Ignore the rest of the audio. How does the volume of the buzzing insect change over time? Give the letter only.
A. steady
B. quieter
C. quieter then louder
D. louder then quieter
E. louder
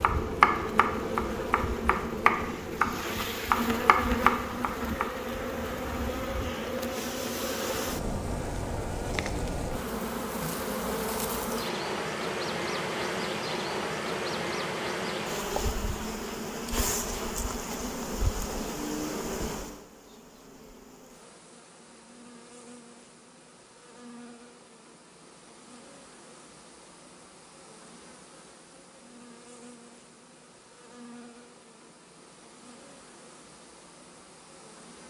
B.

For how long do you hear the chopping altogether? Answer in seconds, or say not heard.
5 s.